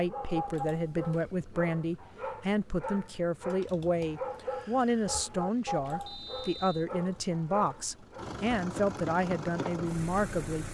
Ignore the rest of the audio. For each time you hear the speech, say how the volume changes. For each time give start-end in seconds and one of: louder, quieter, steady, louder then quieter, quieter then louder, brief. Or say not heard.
0.0-10.6 steady.